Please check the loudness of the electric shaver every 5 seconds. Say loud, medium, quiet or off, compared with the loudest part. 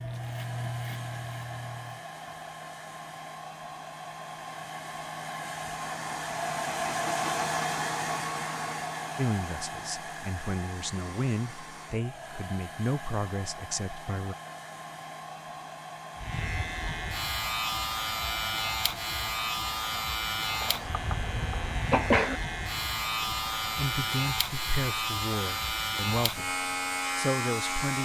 medium, off, off, loud, loud, loud.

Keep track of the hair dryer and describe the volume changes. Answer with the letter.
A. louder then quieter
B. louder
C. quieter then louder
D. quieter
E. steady
A.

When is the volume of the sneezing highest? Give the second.
22 s.